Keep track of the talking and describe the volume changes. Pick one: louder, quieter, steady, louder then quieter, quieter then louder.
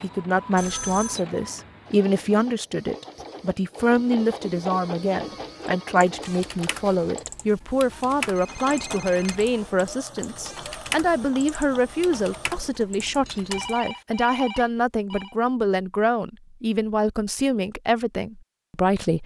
steady.